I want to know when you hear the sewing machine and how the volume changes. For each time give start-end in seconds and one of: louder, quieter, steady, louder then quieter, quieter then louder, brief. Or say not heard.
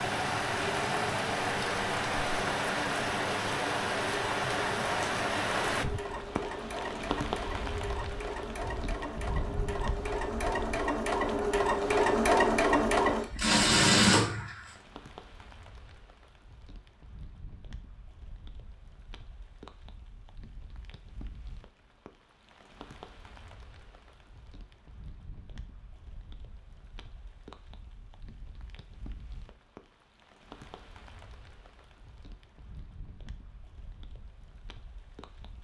0.1-14.7 louder.